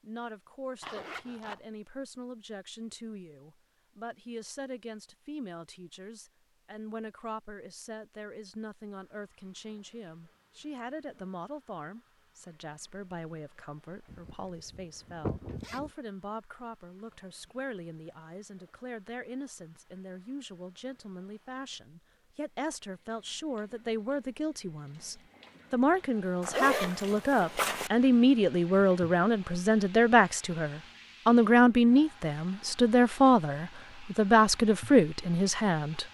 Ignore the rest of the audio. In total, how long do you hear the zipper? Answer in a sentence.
The zipper can be heard for 4 seconds in total.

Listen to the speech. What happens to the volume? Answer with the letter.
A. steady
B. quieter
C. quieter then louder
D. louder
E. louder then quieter
D.